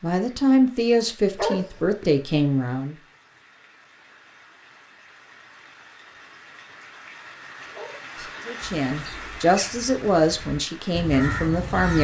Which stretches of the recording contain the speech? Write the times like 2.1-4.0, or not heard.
0.0-3.0, 8.4-11.9.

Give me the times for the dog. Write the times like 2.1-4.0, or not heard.
1.4-2.0, 7.7-8.4.